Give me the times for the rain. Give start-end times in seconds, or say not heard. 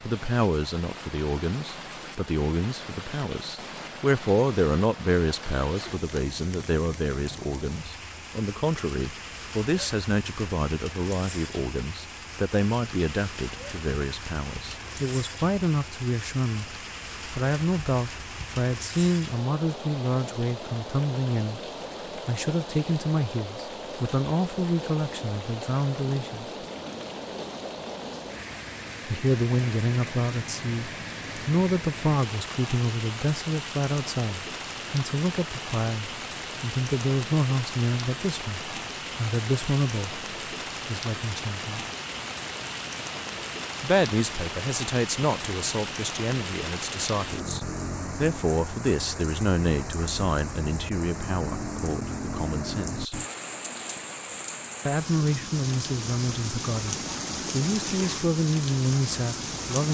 0.0-59.8.